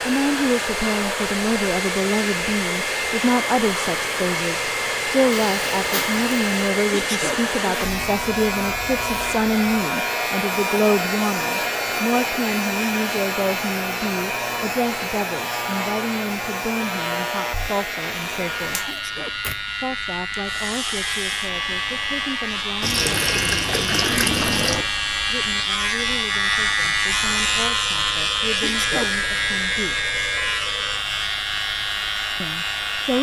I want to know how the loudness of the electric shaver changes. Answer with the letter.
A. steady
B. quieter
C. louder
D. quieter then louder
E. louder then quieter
C.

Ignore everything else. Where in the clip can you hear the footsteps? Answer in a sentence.
The footsteps can't be heard in this clip.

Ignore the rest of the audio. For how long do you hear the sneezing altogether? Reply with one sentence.
You can hear the sneezing for 2 seconds altogether.